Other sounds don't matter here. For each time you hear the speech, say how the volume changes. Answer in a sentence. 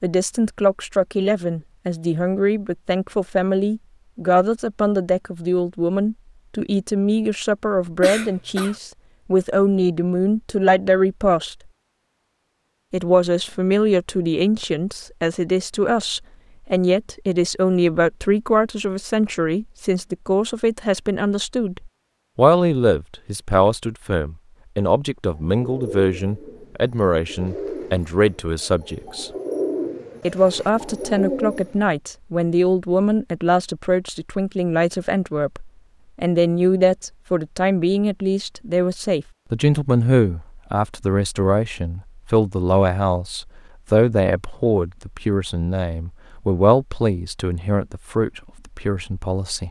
You can hear the speech from 0.0 to 11.6 s, at a steady volume; from 12.9 to 29.3 s, at a steady volume; and from 30.2 to 49.6 s, at a steady volume.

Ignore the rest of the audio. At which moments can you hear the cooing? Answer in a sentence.
You can hear the cooing from 25.3 to 31.8 s.